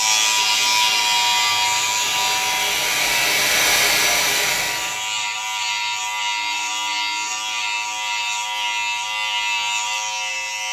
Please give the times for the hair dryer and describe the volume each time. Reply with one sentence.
You can hear the hair dryer from 0.0 to 5.1 s, getting louder.